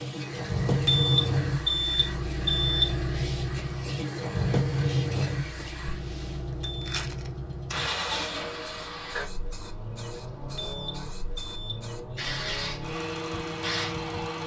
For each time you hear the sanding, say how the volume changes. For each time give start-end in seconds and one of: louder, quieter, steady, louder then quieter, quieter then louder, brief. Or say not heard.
not heard.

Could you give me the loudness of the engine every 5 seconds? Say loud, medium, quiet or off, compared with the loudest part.
loud, medium, medium.